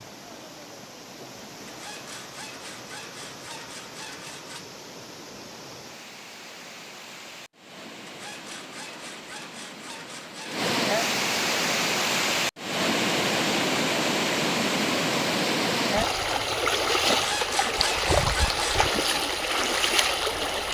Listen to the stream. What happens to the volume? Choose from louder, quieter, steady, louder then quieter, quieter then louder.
louder.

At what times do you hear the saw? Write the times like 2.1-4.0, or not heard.
1.6-4.7, 8.1-10.7, 17.1-18.9.